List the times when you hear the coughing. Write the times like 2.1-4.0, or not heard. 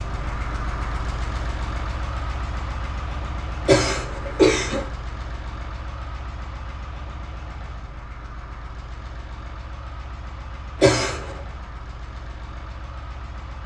3.6-4.8, 10.8-11.3.